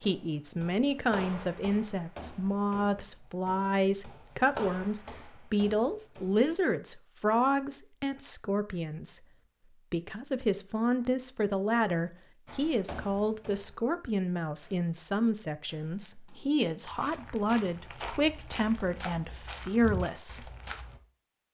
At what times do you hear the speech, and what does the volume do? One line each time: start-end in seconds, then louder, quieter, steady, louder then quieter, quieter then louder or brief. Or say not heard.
0.0-9.2 steady
9.9-20.5 steady.